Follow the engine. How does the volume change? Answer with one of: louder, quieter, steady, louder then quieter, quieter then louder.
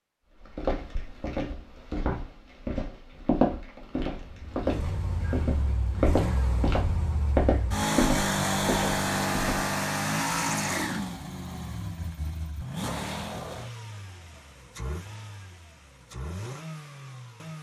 louder then quieter.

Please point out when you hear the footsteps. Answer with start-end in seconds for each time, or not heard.
0.3-9.8.